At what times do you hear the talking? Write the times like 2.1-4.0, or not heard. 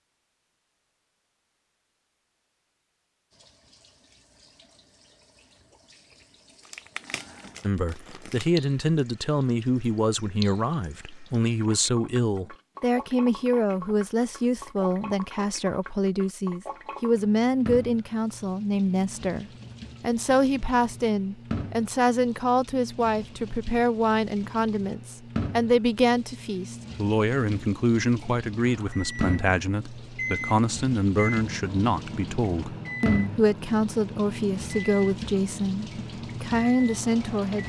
7.6-37.6.